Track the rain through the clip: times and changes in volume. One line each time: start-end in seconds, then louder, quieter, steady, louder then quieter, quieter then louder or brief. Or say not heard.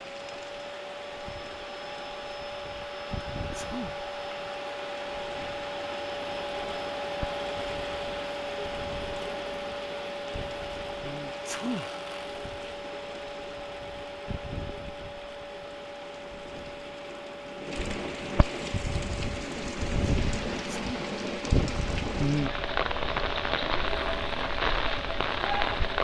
0.0-25.9 louder.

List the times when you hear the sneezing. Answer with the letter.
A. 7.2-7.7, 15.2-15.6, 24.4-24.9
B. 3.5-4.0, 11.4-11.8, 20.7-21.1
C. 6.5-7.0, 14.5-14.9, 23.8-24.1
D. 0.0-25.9
B.